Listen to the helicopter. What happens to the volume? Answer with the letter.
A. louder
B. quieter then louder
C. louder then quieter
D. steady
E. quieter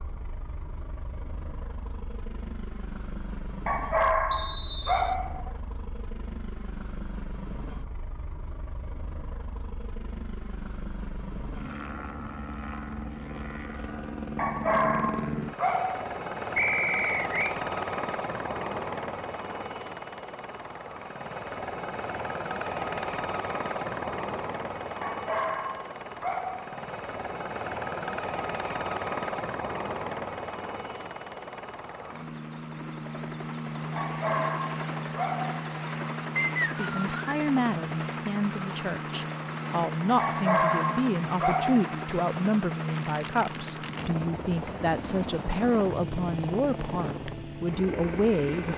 A.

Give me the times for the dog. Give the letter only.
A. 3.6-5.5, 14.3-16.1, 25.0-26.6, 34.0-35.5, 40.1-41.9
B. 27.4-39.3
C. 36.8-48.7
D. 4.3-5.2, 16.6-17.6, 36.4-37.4
A.